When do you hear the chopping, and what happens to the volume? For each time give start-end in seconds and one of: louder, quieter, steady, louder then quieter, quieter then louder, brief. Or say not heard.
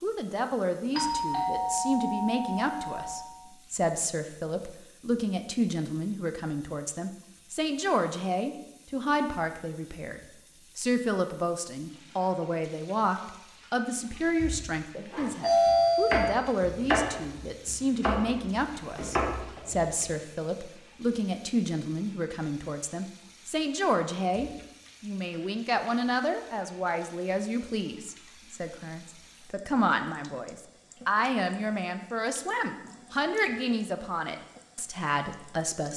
15.1-19.9 quieter then louder.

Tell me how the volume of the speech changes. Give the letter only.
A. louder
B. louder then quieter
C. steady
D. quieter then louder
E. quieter
C.